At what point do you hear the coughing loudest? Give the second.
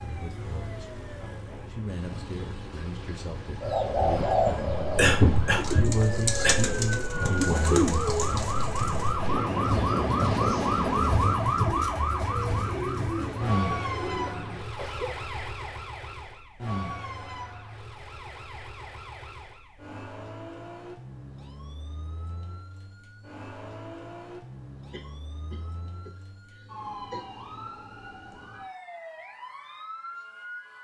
5 s.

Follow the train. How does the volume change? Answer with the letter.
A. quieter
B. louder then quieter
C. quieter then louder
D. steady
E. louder
E.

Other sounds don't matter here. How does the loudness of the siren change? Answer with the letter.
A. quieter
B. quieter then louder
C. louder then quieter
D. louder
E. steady
C.